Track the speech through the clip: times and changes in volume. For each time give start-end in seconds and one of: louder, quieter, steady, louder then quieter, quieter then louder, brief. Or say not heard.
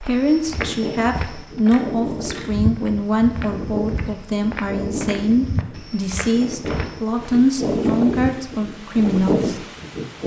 0.0-9.7 steady.